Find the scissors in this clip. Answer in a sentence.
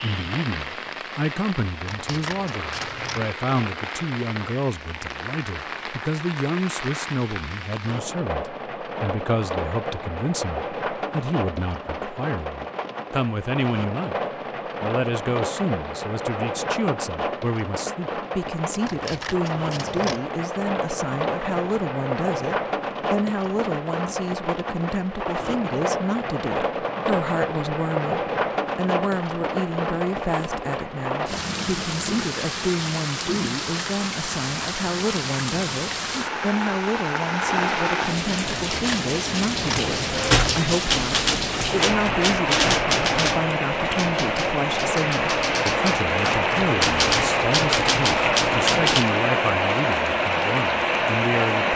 You can hear the scissors from 1.9 to 3.2 s, from 18.9 to 20.2 s and from 38.5 to 40.8 s.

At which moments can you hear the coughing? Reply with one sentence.
The coughing can't be heard in this clip.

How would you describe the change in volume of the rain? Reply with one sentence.
The loudness of the rain goes up.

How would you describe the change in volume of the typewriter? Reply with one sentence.
The loudness of the typewriter goes down, then up.